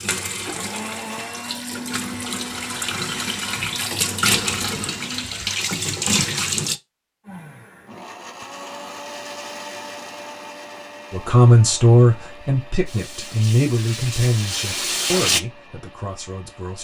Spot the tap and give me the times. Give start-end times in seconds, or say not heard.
0.0-6.8, 12.8-15.4.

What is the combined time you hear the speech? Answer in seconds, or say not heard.
6 s.